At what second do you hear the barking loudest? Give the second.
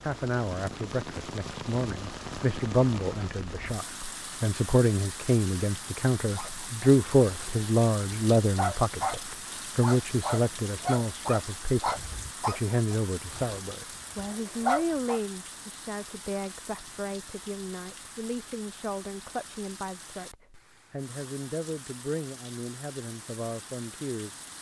15 s.